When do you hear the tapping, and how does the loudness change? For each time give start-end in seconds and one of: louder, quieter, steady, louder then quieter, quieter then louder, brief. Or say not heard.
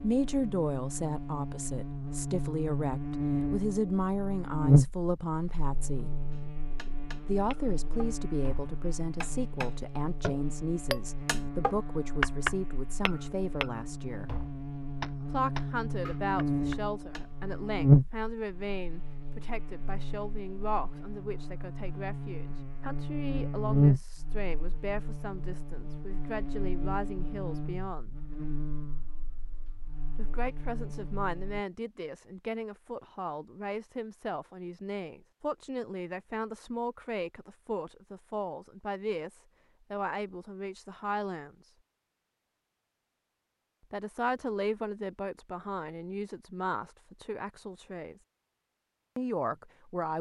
6.3-17.4 louder then quieter.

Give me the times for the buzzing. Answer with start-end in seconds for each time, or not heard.
0.0-31.6.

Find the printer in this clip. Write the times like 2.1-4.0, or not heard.
not heard.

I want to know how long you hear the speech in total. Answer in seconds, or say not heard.
43 s.